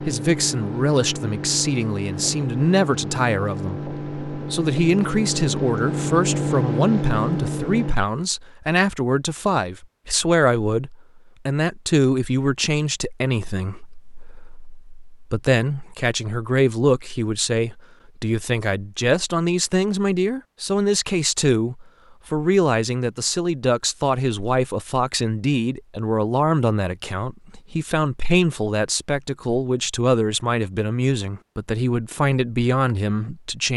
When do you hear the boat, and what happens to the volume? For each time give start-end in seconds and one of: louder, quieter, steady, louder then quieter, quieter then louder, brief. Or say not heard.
0.0-8.0 louder.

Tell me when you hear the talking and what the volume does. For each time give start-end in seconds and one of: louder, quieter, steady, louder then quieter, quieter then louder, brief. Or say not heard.
0.0-33.7 steady.